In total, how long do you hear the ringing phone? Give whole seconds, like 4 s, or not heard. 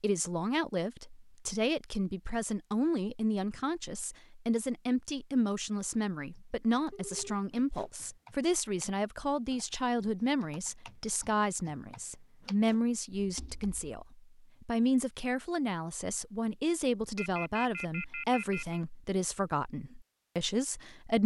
3 s.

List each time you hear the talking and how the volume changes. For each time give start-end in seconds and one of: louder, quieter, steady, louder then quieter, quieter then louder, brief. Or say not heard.
0.0-21.2 steady.